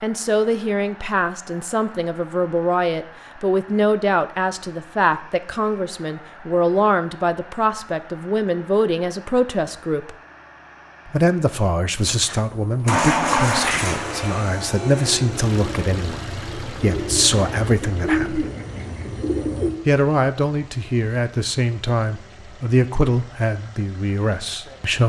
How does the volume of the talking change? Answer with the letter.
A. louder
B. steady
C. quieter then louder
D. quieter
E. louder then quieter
B.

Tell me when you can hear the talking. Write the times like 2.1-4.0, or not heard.
0.0-10.2, 11.1-18.4, 19.9-25.0.